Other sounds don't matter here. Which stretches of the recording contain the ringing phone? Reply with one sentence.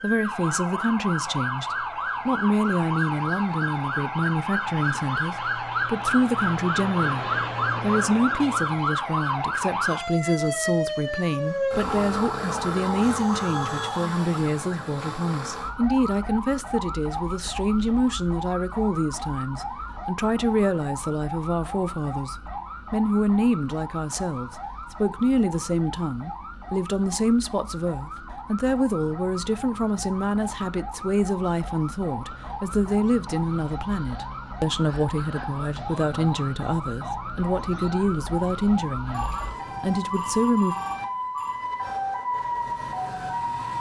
You can hear the ringing phone from 13.2 to 14.1 s and from 39.1 to 41.6 s.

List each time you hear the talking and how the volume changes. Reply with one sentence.
The talking can be heard from 0.0 to 40.8 s, at a steady volume.